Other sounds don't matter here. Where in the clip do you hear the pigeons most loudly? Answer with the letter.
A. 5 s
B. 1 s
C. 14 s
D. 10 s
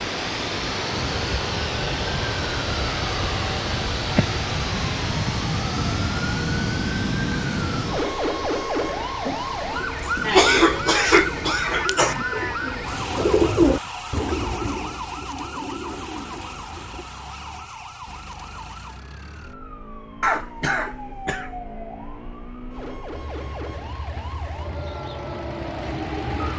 C.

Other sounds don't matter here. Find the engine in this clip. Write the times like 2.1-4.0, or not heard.
0.0-26.5.